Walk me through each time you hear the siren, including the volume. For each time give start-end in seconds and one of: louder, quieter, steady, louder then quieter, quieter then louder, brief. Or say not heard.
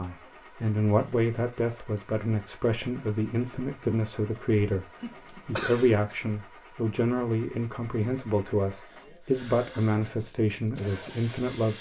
not heard.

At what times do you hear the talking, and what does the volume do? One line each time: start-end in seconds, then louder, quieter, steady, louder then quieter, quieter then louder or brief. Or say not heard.
0.0-11.7 steady.